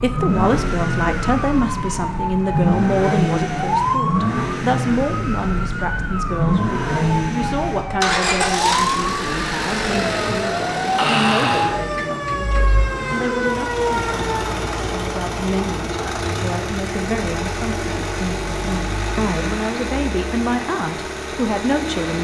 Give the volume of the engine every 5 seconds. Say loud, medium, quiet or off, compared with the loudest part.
loud, loud, loud, loud, medium.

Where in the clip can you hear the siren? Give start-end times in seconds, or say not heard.
0.0-14.6.